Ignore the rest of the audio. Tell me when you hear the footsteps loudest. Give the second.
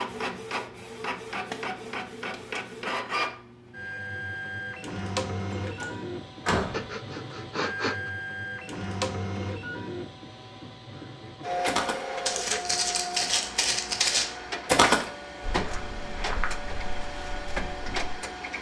15 s.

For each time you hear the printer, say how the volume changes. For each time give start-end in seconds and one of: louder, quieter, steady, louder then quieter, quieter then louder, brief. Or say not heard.
0.0-18.5 steady.